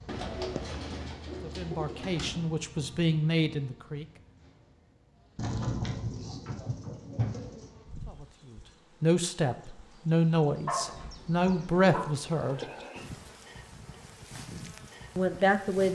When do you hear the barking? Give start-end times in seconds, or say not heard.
10.7-12.0.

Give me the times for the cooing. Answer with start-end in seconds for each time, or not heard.
0.1-2.5, 5.3-7.7, 10.8-12.8.